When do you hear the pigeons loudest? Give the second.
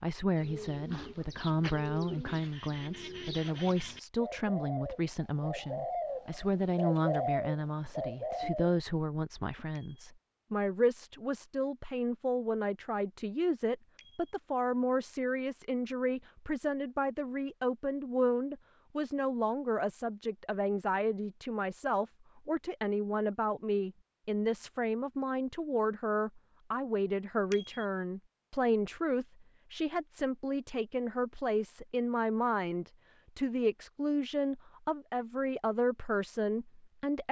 7 s.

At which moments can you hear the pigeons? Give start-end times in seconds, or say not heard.
0.3-8.8.